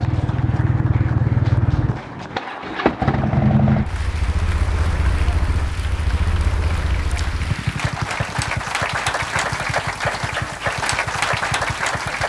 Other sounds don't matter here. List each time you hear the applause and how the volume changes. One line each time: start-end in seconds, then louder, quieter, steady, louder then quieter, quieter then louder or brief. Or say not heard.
0.0-12.2 louder.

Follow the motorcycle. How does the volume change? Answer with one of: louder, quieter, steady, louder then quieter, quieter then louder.
quieter.